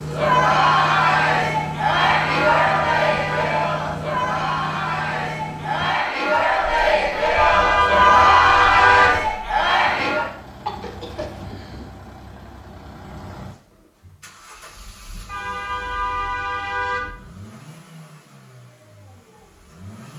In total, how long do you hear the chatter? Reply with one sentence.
The chatter can be heard for 10 seconds in total.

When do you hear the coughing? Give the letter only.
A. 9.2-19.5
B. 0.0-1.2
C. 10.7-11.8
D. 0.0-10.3
C.